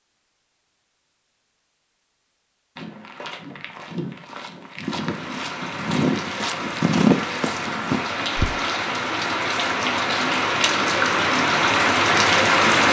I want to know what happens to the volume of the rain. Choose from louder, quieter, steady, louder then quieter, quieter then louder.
louder.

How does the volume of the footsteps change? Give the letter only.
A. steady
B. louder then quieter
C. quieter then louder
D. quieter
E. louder
B.